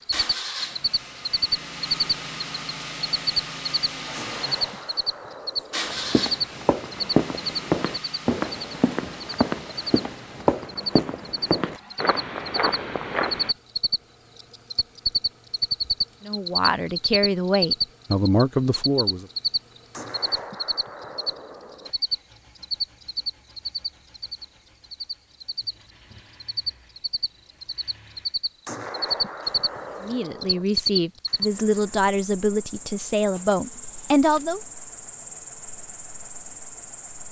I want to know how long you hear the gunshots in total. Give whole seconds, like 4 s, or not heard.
6 s.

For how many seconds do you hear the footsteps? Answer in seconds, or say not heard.
8 s.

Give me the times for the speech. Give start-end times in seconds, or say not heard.
16.2-19.2, 30.0-34.6.